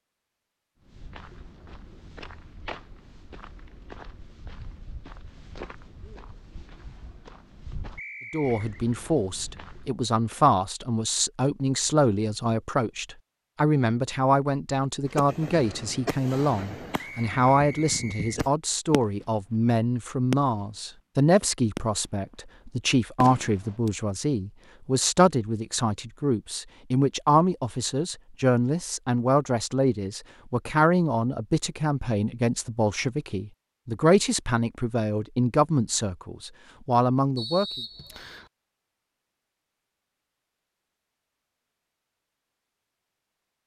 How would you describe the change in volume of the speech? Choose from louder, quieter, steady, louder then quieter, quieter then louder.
steady.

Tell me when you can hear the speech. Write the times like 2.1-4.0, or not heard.
8.3-37.8.